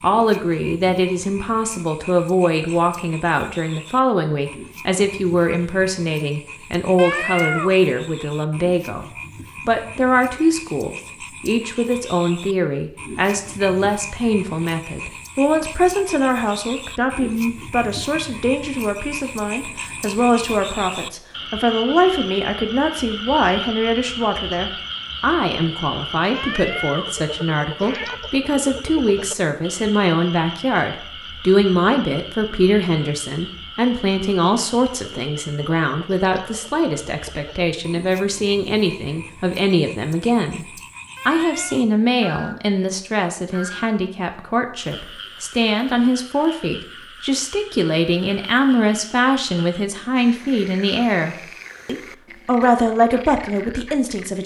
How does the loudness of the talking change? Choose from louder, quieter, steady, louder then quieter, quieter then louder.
steady.